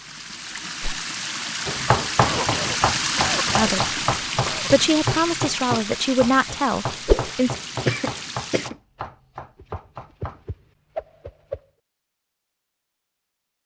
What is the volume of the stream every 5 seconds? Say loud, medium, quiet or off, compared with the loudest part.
loud, medium, off.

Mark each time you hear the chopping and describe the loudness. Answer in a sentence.
You can hear the chopping from 1.6 to 10.4 s, getting quieter.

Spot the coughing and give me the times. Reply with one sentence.
You can hear the coughing from 2.1 to 4.7 s and from 7.8 to 8.8 s.